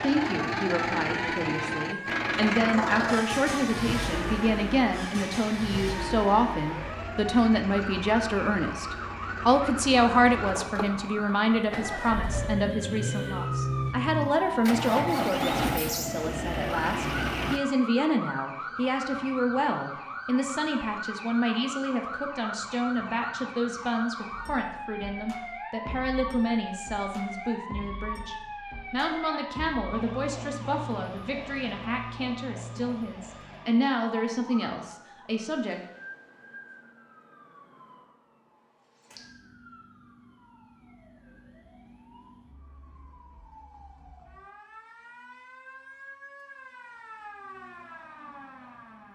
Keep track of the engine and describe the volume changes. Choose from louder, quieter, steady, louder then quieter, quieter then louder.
quieter then louder.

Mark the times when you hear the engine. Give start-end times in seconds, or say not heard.
0.0-17.6.